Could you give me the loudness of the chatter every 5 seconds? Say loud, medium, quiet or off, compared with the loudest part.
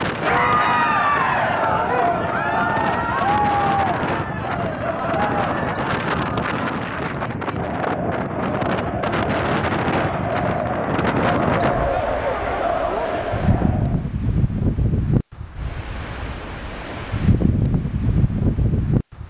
loud, medium, loud, off.